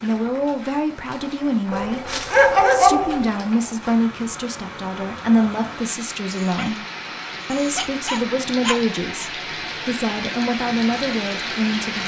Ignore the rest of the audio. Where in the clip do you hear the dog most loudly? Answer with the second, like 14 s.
3 s.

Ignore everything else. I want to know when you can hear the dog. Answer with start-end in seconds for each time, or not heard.
1.7-3.3, 6.3-9.2.